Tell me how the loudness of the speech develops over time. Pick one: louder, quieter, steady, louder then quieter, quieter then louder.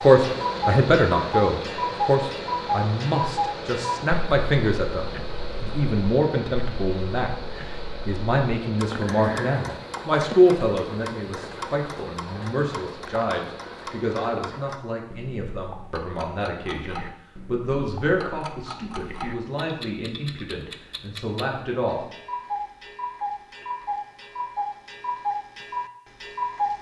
quieter.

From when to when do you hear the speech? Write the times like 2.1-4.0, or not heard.
0.0-7.3, 8.1-22.1.